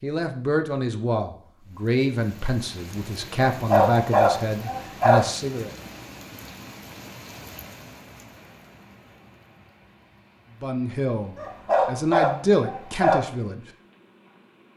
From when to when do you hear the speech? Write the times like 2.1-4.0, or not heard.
0.0-5.7, 10.6-13.7.